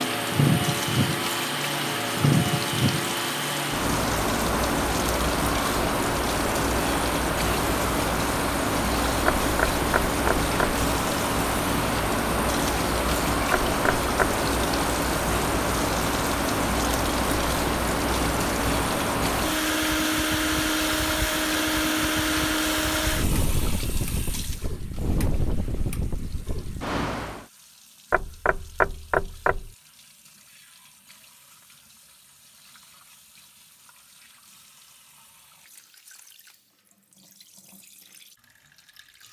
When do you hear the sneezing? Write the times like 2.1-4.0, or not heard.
not heard.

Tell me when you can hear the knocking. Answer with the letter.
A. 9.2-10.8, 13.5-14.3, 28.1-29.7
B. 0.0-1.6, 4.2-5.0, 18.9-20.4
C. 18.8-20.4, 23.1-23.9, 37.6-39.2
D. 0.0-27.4
A.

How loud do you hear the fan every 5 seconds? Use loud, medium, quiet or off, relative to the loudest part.
loud, loud, loud, loud, loud, medium, off, off.